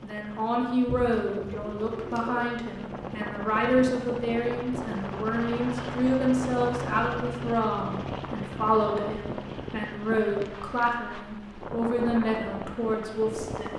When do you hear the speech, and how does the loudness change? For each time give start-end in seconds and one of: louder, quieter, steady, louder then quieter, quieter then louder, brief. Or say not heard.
0.0-13.7 steady.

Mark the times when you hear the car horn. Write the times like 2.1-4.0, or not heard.
not heard.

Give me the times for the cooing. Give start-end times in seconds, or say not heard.
0.8-2.5.